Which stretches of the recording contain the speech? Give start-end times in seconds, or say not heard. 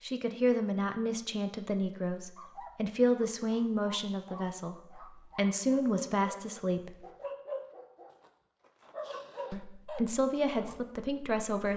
0.0-7.0, 9.5-11.7.